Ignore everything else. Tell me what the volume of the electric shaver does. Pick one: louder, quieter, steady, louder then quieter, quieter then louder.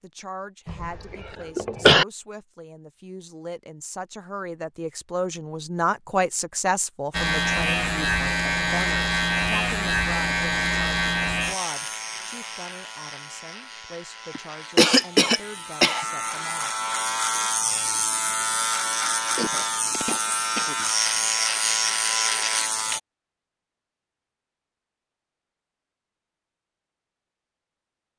quieter then louder.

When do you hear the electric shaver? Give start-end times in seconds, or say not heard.
7.1-23.0.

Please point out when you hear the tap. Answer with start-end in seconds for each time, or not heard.
not heard.